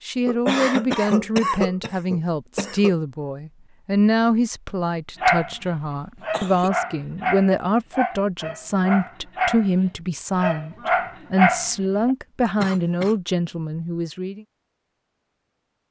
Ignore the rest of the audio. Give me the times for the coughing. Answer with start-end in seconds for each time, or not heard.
0.2-3.0, 6.3-6.7, 12.6-13.2.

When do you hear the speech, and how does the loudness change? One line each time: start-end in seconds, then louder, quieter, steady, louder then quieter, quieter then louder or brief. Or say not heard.
0.0-14.4 steady.